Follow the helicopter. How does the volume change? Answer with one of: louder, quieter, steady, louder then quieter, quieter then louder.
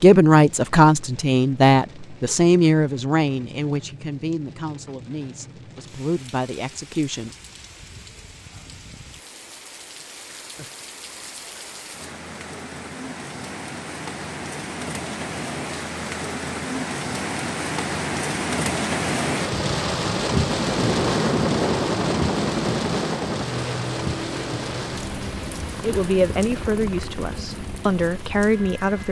quieter.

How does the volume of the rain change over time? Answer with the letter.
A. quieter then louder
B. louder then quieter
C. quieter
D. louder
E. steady
B.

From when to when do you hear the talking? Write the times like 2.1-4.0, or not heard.
0.0-7.3, 25.8-29.0.